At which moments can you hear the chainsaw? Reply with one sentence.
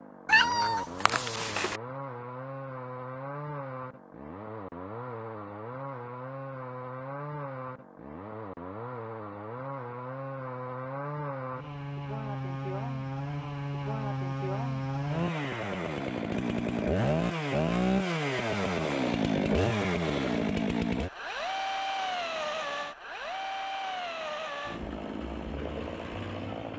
The chainsaw can be heard from 0.0 to 26.7 s.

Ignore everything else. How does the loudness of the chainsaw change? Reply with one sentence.
The loudness of the chainsaw goes up, then down.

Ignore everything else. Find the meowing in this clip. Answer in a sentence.
You can hear the meowing from 0.2 to 1.8 s.